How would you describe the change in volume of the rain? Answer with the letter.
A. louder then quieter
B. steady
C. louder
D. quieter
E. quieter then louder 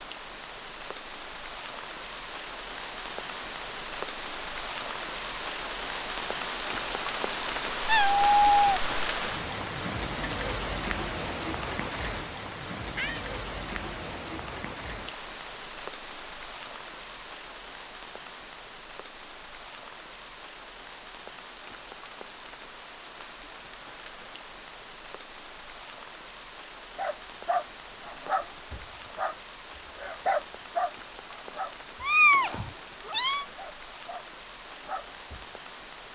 D.